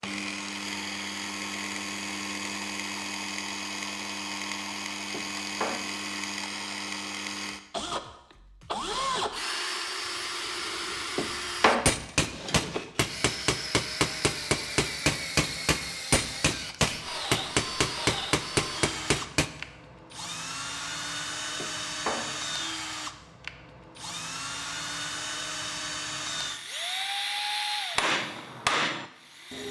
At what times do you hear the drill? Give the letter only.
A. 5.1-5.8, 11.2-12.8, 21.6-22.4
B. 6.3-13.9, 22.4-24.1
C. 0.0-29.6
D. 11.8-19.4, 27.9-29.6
C.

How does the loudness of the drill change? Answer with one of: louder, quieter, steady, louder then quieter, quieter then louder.
steady.